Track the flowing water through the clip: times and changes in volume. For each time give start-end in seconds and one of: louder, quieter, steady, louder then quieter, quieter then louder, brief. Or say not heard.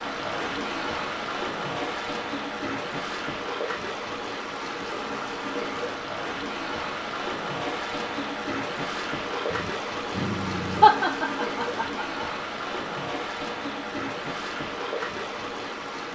0.0-16.1 steady.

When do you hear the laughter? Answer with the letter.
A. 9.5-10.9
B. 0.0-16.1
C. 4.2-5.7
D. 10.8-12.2
D.